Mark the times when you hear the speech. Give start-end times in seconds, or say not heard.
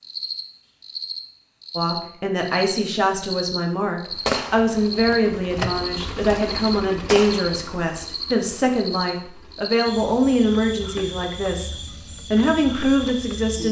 1.8-13.6.